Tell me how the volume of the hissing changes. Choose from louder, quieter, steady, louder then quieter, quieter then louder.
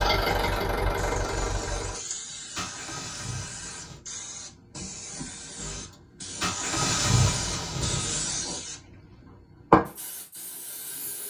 louder.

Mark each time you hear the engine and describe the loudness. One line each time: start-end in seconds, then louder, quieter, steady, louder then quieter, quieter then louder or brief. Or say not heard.
0.0-4.0 quieter
5.5-8.2 brief.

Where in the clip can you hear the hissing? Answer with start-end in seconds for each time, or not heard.
0.2-11.2.